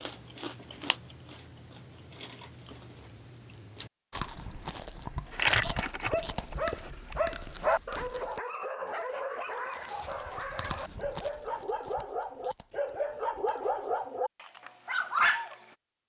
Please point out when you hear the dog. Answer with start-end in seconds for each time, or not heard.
5.3-15.6.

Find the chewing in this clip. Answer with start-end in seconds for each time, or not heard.
0.0-8.4, 9.9-13.8.